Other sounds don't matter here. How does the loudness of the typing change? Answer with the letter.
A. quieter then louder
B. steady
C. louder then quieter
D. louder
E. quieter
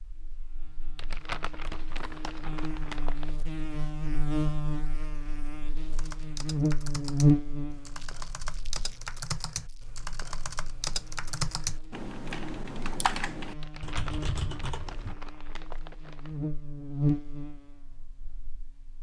D.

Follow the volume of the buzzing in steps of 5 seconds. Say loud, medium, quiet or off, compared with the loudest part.
medium, loud, quiet, medium.